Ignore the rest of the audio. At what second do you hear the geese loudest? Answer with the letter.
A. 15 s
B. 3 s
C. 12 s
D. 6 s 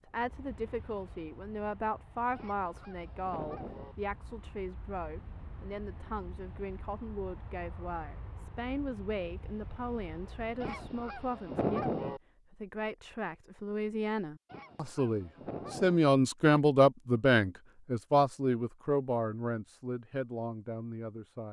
C.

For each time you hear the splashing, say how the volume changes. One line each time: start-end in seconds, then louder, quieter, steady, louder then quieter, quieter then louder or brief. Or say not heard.
not heard.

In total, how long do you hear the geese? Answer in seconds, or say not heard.
5 s.